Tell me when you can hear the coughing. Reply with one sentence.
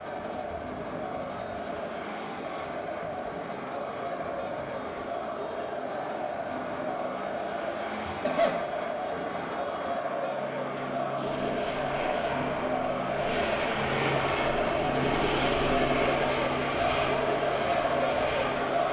You can hear the coughing from 8.1 to 8.6 s.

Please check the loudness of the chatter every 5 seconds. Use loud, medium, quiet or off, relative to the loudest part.
medium, medium, loud, loud.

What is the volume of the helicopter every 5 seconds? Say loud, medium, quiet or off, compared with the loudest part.
medium, medium, loud, loud.